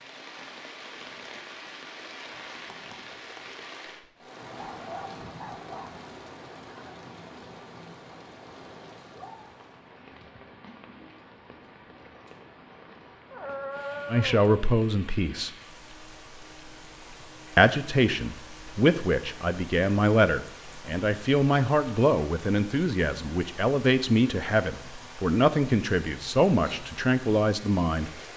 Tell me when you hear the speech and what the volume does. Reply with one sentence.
The speech can be heard briefly from 14.1 to 15.5 s; and from 17.6 to 28.1 s, at a steady volume.